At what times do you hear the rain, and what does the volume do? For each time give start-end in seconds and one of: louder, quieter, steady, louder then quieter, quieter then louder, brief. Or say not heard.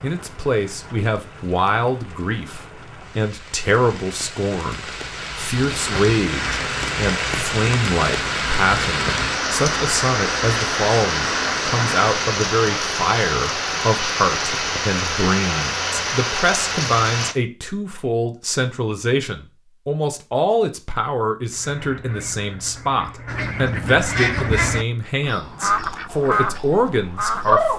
0.0-17.4 louder.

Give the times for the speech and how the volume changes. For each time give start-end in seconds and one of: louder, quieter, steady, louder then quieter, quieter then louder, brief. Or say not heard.
0.0-27.7 steady.